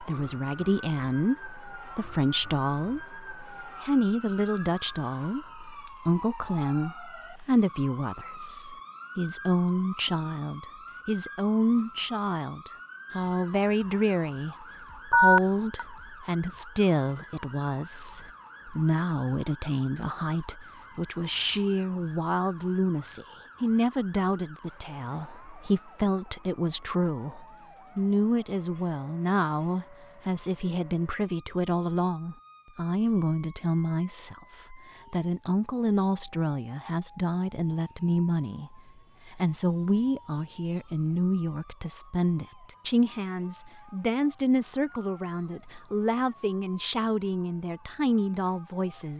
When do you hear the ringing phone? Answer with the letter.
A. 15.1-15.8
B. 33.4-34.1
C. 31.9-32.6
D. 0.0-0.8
A.